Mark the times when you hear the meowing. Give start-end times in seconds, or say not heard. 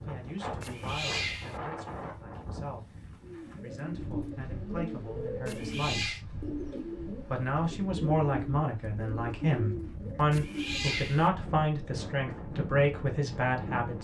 0.6-1.6, 5.5-6.2, 10.3-11.3.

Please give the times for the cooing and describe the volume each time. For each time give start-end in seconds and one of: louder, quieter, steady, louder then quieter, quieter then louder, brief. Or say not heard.
3.2-11.0 steady.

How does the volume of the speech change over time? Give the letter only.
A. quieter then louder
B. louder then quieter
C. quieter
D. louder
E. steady
D.